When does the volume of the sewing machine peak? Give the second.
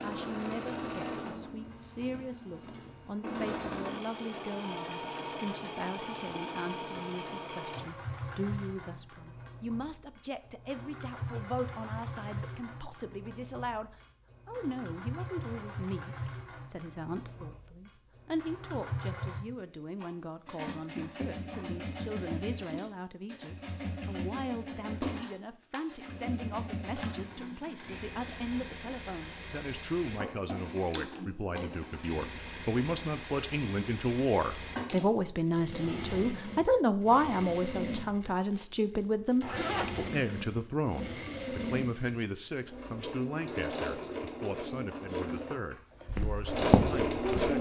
47 s.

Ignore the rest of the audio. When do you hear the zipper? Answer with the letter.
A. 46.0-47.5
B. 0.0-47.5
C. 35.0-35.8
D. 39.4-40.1
D.